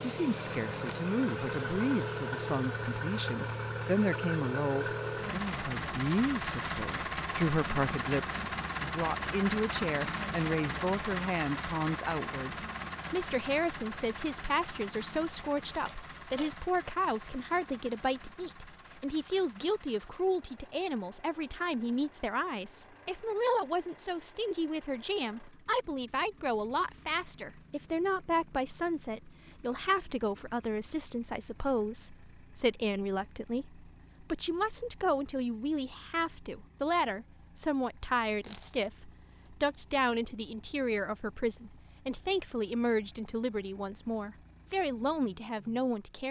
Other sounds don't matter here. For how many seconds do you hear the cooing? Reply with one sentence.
You can't hear the cooing here.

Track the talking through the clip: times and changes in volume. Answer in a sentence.
The talking can be heard from 0.0 to 46.2 s, at a steady volume.